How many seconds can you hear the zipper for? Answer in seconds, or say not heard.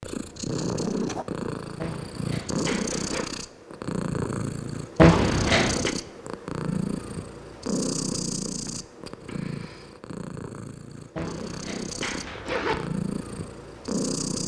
4 s.